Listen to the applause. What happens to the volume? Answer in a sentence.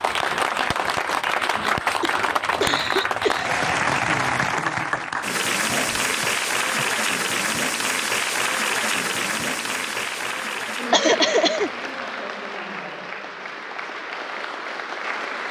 The volume of the applause goes down.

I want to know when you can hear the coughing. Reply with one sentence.
The coughing can be heard from 1.8 to 3.5 s, from 5.7 to 6.9 s and from 10.9 to 11.7 s.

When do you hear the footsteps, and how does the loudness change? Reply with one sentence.
You can't hear the footsteps here.